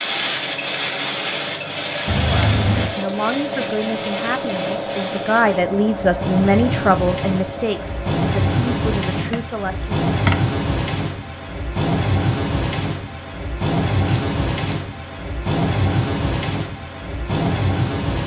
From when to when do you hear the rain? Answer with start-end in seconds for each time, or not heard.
0.0-18.2.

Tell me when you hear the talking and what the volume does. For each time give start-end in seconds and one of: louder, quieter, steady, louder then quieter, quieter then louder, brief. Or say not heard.
2.2-9.9 louder then quieter.